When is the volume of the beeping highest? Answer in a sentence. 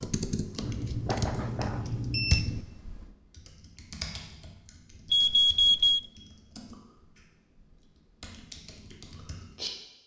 The volume of the beeping peaks at 6 seconds.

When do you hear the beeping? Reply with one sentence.
You can hear the beeping from 0.6 to 2.6 s and from 5.1 to 6.0 s.